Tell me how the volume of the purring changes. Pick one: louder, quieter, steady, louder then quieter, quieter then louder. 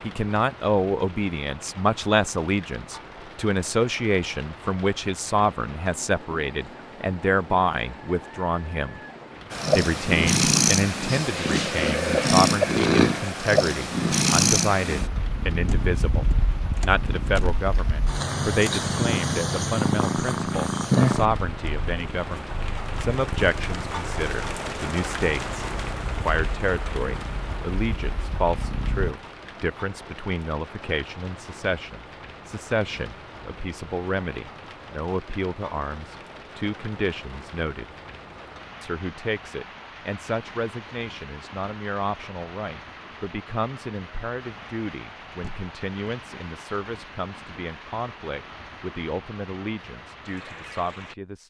quieter.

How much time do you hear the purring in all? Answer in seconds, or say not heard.
20 s.